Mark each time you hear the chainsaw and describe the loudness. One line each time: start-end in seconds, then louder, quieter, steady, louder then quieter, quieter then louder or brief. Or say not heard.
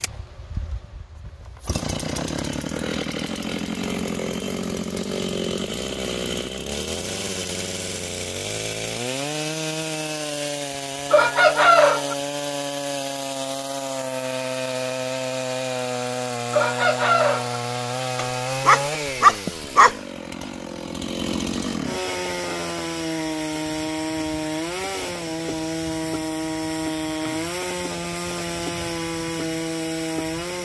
0.0-30.6 steady.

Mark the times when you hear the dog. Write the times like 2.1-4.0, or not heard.
18.1-19.9.